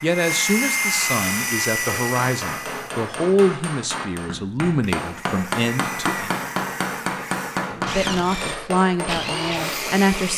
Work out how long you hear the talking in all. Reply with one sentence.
The talking can be heard for 9 seconds in total.